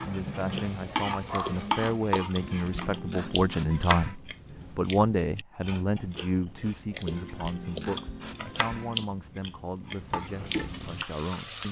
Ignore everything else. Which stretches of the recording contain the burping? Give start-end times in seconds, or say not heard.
not heard.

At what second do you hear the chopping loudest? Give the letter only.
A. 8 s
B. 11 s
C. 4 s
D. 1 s
C.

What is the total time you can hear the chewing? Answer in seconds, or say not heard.
11 s.